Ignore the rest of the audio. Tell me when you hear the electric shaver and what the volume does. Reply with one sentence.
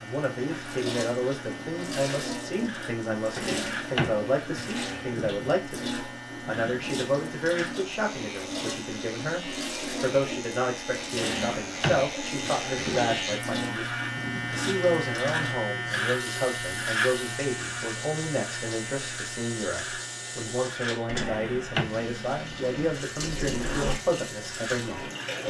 The electric shaver can be heard from 0.0 to 25.4 s, getting louder then quieter.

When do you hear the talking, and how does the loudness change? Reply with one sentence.
You can hear the talking from 0.0 to 25.4 s, at a steady volume.